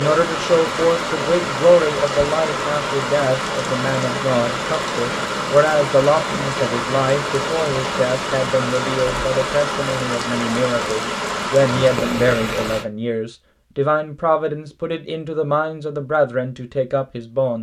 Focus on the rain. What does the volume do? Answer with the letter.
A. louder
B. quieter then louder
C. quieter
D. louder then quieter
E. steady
E.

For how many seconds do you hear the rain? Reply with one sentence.
The rain can be heard for 13 seconds in total.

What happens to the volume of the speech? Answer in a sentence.
The volume of the speech stays about the same.